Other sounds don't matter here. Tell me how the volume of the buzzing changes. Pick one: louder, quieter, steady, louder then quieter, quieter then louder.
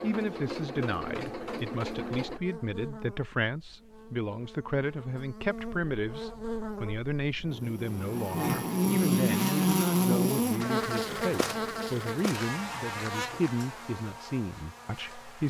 louder then quieter.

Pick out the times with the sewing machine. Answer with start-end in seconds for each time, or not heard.
0.0-2.4.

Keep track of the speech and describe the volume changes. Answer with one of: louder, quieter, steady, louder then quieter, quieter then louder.
steady.